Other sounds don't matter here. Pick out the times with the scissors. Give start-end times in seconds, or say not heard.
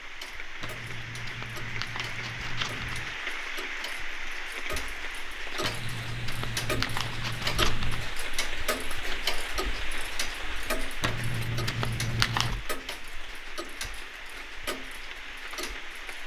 0.6-3.1, 5.6-8.2, 11.0-12.6.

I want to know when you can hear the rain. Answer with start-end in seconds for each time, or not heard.
0.0-16.2.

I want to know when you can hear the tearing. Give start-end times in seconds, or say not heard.
not heard.